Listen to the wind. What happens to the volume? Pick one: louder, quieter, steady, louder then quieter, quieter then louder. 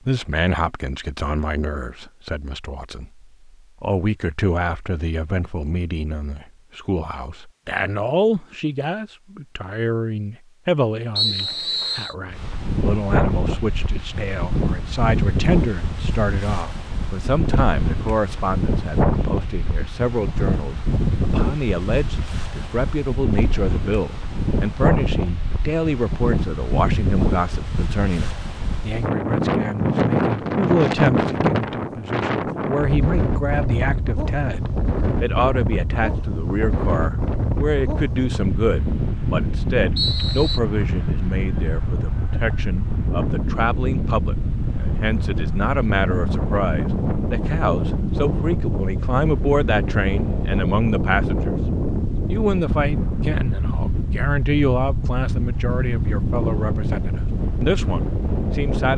steady.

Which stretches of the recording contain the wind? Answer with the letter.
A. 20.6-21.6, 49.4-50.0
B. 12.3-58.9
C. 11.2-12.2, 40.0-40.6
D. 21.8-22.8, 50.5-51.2
B.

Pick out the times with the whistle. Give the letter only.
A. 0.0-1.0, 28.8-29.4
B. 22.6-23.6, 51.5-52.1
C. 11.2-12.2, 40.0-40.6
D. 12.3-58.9
C.